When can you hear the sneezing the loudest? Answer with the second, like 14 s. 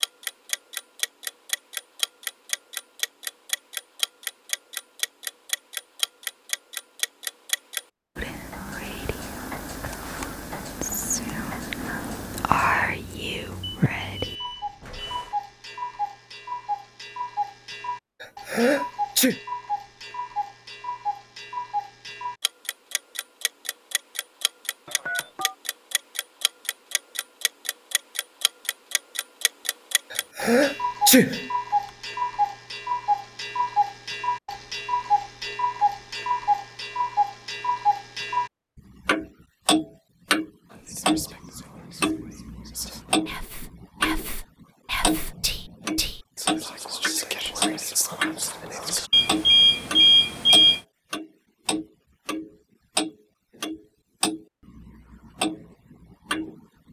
31 s.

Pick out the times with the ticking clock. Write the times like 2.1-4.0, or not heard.
0.0-56.8.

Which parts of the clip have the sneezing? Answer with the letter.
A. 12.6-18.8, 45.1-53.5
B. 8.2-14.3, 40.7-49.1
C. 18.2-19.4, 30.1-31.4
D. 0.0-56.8
C.